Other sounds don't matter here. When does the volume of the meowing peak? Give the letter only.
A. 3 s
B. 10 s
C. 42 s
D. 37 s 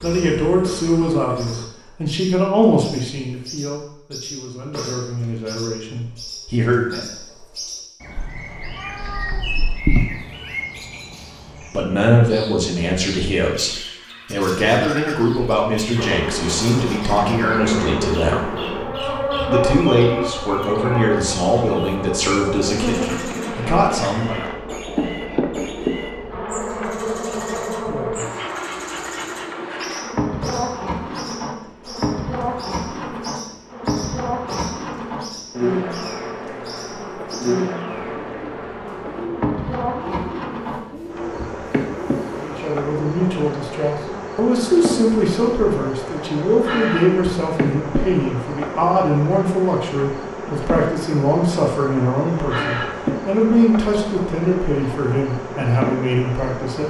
B.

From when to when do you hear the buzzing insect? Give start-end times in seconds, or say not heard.
0.0-1.7, 15.9-56.8.